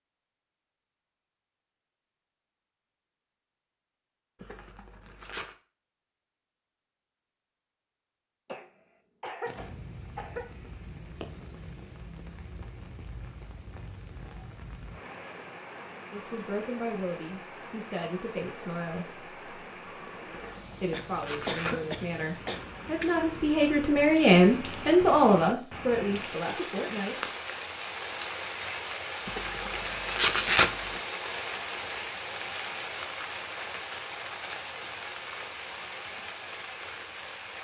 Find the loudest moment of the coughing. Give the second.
22 s.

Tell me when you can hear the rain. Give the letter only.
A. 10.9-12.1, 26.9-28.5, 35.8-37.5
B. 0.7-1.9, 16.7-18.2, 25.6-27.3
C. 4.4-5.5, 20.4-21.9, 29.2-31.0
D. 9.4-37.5
D.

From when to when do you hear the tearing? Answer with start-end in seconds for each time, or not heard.
4.4-5.5, 20.4-21.9, 29.2-31.0.